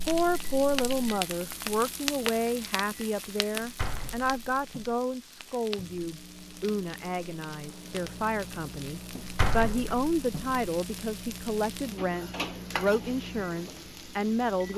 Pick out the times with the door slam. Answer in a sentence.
You can hear the door slam from 3.5 to 5.0 s and from 9.2 to 10.6 s.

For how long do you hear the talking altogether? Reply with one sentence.
The talking can be heard for 15 seconds in total.